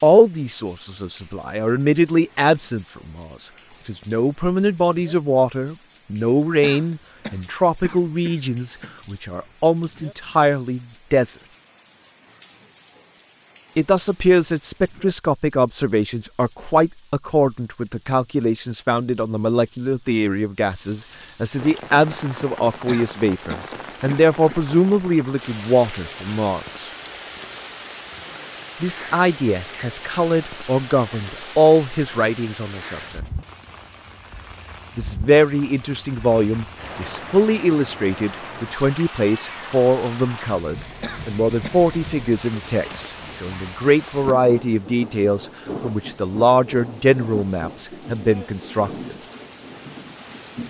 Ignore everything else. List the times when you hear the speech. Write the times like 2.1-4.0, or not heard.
0.0-11.3, 13.8-26.9, 28.8-33.2, 35.0-49.1.